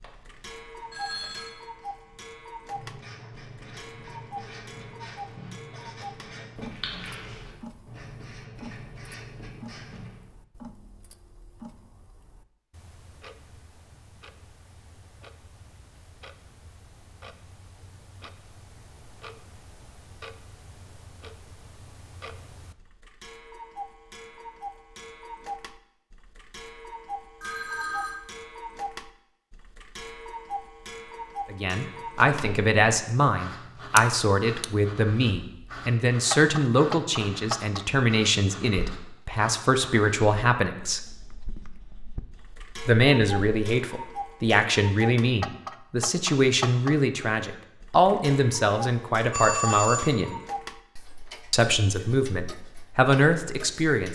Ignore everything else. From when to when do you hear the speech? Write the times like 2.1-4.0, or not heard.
31.5-41.0, 42.9-50.4, 51.5-54.1.